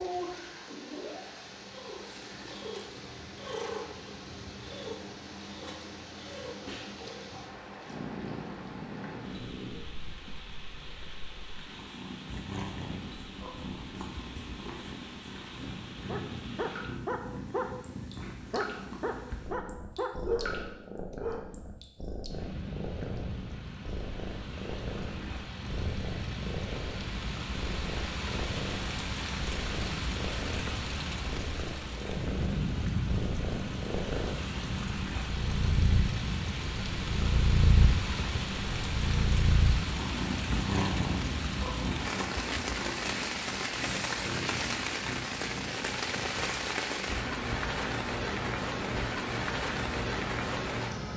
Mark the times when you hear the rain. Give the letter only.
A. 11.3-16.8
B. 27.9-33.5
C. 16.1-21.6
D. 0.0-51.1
D.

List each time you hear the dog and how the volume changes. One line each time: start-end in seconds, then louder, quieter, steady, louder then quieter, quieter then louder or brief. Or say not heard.
16.1-21.6 steady.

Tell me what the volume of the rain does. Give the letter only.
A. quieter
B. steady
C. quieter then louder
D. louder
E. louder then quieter
D.